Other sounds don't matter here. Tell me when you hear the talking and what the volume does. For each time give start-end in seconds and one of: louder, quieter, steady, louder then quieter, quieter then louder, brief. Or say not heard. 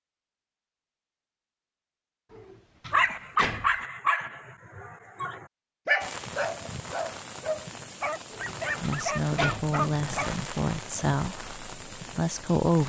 8.8-12.8 steady.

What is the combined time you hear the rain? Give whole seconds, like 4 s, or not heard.
7 s.